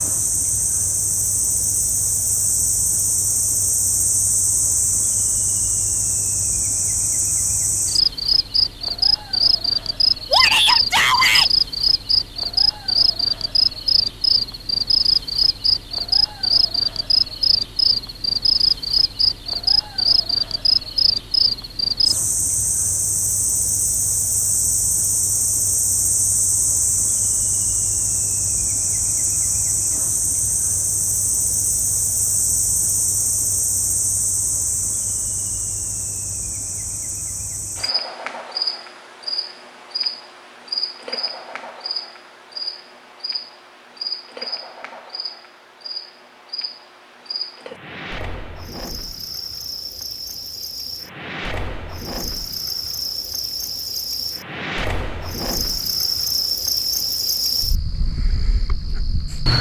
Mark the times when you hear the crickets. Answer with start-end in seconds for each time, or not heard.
0.0-59.5.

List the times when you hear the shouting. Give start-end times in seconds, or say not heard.
10.3-11.5.